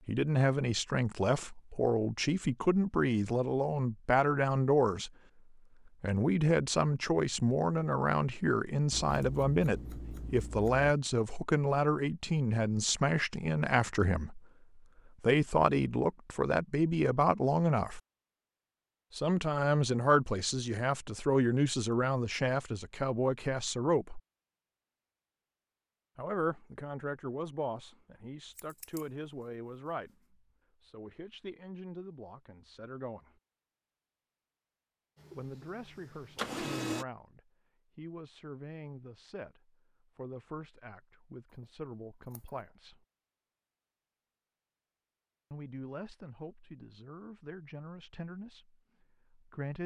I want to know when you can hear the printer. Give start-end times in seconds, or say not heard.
35.2-37.0.